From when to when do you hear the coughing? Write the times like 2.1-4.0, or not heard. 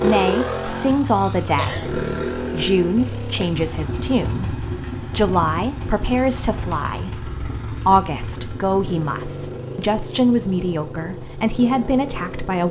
1.6-2.0.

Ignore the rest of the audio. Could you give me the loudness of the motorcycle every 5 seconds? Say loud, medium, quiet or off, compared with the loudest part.
loud, medium, medium.